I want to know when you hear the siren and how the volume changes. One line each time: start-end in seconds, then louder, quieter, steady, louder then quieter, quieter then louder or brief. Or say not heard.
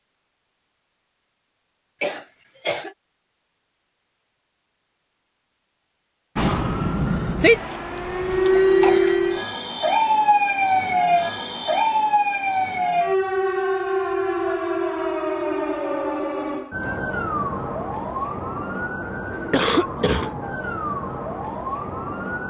6.3-22.4 quieter.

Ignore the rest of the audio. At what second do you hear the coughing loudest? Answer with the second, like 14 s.
20 s.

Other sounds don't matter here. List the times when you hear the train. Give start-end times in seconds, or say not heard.
not heard.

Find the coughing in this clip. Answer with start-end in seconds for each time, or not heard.
2.0-3.0, 8.0-9.2, 19.5-20.3.